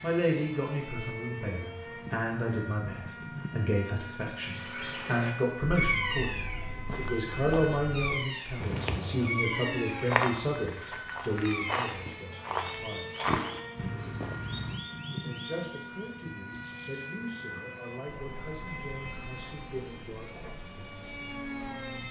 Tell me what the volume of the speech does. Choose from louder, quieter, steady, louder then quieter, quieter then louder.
quieter.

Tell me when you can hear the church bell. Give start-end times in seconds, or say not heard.
not heard.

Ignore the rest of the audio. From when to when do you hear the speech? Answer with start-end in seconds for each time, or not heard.
0.0-13.2, 15.1-20.4.